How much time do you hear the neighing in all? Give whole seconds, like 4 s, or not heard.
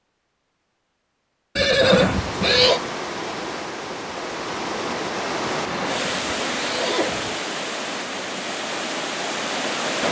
3 s.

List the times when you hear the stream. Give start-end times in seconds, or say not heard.
1.8-10.0.